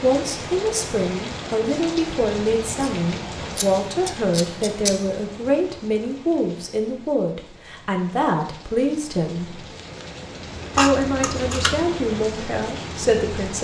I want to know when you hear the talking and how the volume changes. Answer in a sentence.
The talking can be heard from 0.0 to 9.6 s, at a steady volume; and briefly from 10.8 to 13.5 s.